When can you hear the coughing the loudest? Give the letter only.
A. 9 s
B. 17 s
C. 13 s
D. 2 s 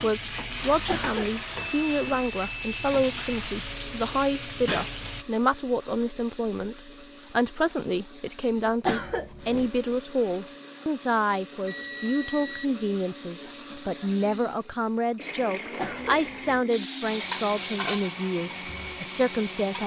A.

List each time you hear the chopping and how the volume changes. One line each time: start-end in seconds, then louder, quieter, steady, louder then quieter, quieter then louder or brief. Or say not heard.
not heard.